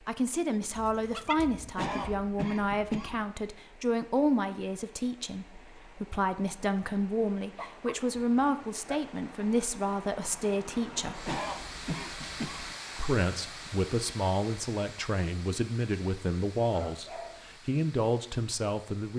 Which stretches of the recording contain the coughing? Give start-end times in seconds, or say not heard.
1.8-3.2, 11.2-12.8.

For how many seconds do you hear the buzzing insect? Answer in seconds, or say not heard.
not heard.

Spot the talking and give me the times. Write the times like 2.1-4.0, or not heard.
0.1-11.3, 12.9-19.1.